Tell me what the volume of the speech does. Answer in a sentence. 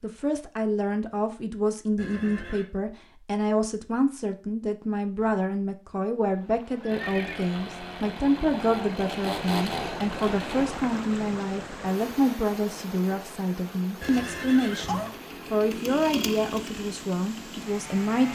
The volume of the speech stays about the same.